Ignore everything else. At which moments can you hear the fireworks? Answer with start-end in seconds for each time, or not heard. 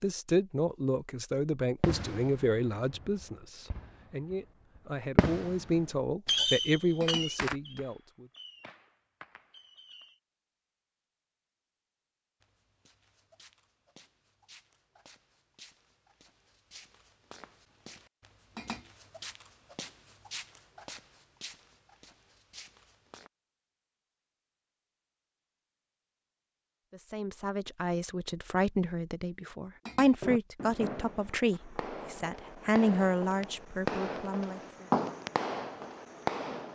1.8-10.2, 30.2-36.6.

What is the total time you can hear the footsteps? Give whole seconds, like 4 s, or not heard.
11 s.